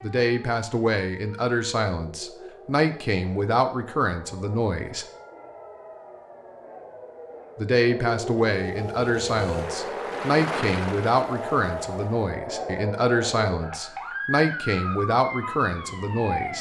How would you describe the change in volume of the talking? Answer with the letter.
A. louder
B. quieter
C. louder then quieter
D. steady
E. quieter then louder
D.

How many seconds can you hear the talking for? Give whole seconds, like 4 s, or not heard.
14 s.